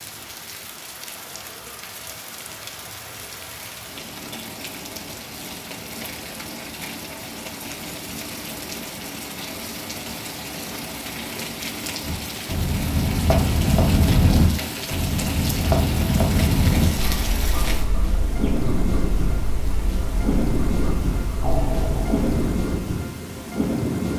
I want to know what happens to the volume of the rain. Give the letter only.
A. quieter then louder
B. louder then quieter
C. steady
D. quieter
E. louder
E.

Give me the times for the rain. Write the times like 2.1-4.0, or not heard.
0.0-24.1.